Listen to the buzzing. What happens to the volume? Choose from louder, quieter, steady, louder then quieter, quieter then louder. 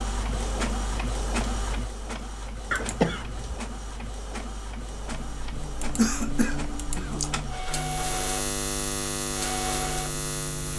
louder.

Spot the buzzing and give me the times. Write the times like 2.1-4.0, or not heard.
5.0-10.7.